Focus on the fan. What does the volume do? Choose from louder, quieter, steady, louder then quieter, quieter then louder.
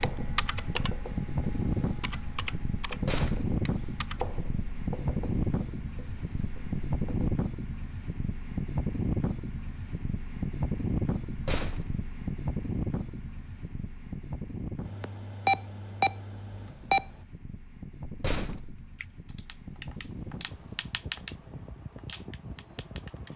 quieter.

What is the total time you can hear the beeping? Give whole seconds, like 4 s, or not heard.
2 s.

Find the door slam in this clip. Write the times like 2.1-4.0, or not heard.
2.9-3.6, 11.2-12.1, 18.1-18.9.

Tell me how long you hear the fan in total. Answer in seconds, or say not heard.
23 s.